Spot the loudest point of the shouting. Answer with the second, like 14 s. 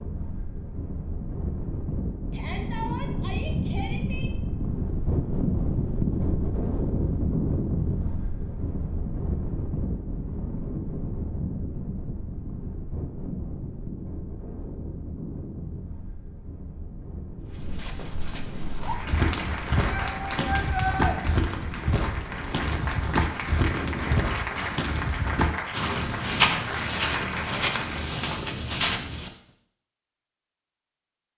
21 s.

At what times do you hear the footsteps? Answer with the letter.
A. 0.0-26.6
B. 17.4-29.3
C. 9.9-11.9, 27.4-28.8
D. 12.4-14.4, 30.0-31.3
B.